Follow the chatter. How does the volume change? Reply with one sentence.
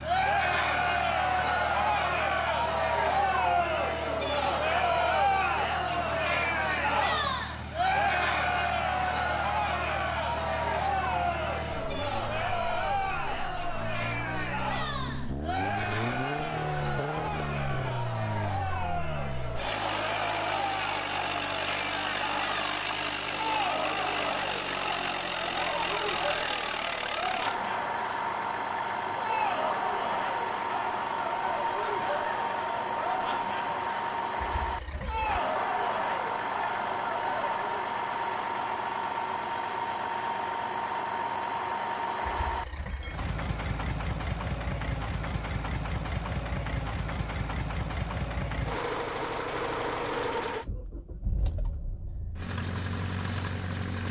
The volume of the chatter goes down.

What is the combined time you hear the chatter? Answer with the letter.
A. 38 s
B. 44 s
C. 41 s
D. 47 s
A.